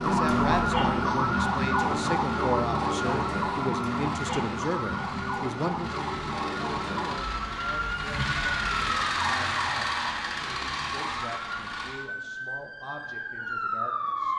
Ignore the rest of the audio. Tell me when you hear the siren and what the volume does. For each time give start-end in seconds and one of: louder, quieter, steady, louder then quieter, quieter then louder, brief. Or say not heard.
0.0-14.3 quieter.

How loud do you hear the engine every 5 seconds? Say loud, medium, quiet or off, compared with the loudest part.
medium, loud, loud.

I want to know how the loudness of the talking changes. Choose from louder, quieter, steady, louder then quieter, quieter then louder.
quieter.